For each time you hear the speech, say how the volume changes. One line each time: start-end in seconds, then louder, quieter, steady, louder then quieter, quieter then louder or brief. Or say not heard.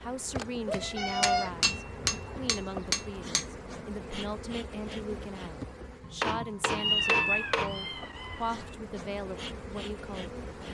0.0-10.3 steady.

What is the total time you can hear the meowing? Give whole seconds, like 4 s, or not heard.
3 s.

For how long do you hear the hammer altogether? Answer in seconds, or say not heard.
5 s.